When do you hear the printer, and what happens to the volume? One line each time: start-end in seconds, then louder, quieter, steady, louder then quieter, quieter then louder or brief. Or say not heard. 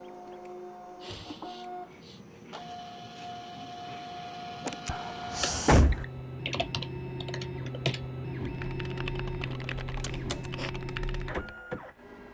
0.0-12.2 louder.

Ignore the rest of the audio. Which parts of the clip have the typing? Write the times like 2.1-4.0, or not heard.
5.3-11.6.